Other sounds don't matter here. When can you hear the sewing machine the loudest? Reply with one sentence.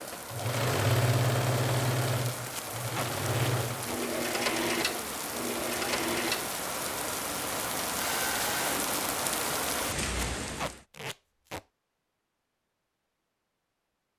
The loudest moment of the sewing machine is at 1 second.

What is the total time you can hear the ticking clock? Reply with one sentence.
You can't hear the ticking clock here.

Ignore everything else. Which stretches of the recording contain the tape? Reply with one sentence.
The tape can be heard from 2.5 to 4.0 s and from 10.2 to 11.7 s.